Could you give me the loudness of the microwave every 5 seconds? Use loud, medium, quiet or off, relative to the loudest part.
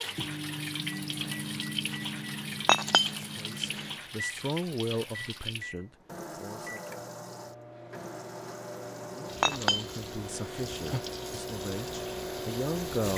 loud, medium, loud.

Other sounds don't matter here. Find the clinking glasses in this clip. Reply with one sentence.
The clinking glasses can be heard from 2.6 to 3.9 s and from 9.4 to 11.0 s.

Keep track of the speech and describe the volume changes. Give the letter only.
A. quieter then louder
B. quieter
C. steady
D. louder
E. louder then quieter
A.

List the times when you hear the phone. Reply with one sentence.
The phone can't be heard in this clip.